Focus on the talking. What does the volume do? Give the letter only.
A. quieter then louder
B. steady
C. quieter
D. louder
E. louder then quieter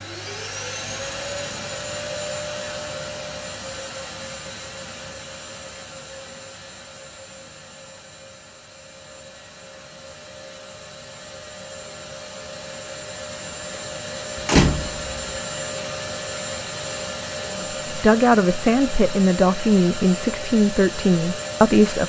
B.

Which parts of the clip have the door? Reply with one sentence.
The door can be heard from 14.4 to 15.2 s.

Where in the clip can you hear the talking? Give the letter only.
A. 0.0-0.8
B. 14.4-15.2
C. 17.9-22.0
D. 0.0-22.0
C.